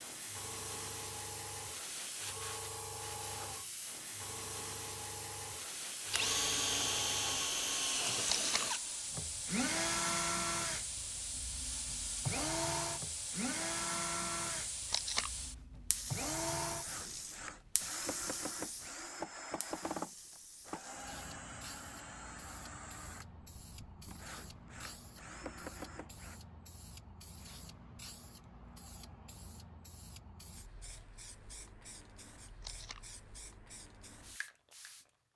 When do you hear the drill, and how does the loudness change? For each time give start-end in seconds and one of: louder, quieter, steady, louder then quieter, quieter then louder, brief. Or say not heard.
6.1-26.4 quieter.